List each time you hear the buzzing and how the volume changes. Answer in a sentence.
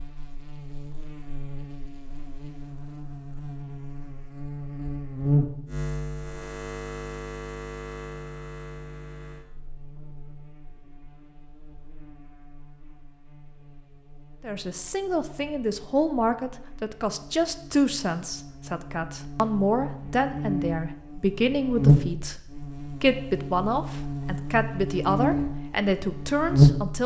You can hear the buzzing from 0.0 to 27.0 s, getting quieter then louder.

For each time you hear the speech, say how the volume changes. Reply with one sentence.
You can hear the speech from 14.4 to 27.0 s, at a steady volume.